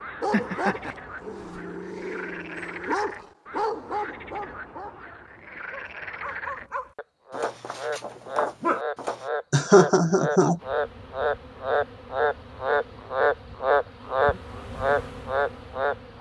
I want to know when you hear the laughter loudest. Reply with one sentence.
The volume of the laughter peaks at 10 seconds.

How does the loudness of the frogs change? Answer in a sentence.
The loudness of the frogs goes up.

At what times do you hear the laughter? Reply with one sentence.
The laughter can be heard from 0.3 to 0.9 s and from 9.5 to 10.6 s.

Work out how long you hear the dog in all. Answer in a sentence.
You can hear the dog for 9 seconds altogether.